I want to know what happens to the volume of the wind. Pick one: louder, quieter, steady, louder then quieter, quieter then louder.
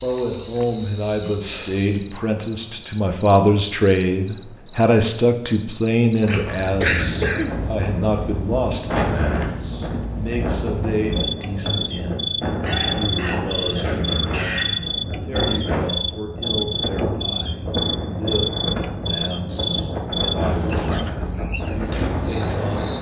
steady.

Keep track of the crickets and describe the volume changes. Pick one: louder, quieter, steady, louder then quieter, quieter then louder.
steady.